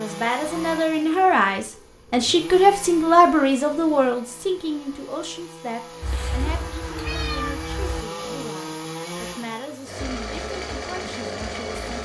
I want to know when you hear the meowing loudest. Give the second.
7 s.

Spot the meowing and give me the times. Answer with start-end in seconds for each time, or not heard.
6.0-8.1.